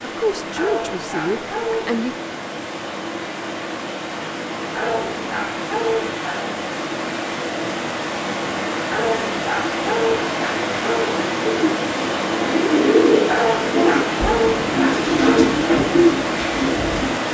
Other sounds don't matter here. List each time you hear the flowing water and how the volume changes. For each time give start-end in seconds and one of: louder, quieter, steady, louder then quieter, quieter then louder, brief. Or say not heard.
0.0-17.2 louder.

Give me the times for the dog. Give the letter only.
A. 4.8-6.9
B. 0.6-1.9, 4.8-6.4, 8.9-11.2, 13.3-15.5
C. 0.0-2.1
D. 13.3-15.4
B.